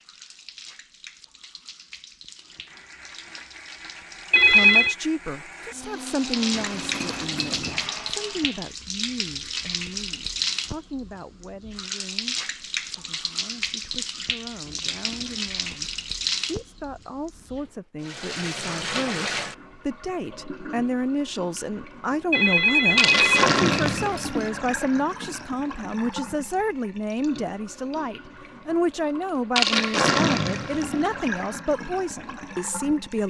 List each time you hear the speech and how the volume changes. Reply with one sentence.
You can hear the speech from 4.3 to 33.2 s, getting quieter then louder.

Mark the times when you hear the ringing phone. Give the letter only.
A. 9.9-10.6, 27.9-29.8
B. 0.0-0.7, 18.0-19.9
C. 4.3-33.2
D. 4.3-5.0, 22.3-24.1
D.